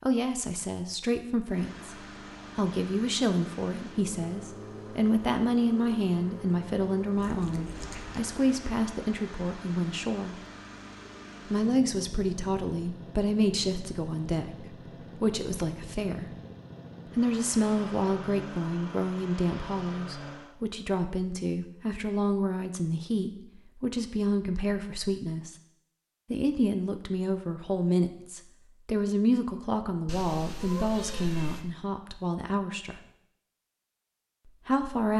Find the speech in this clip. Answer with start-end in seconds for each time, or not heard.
0.0-1.9, 2.5-10.4, 11.4-16.4, 17.1-25.6, 26.3-33.0, 34.5-35.1.